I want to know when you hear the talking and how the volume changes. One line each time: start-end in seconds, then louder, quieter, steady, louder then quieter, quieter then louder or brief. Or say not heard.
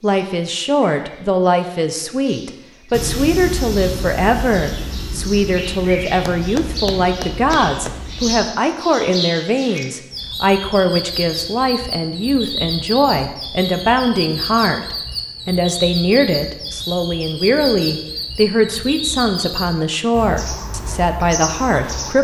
0.0-22.1 steady.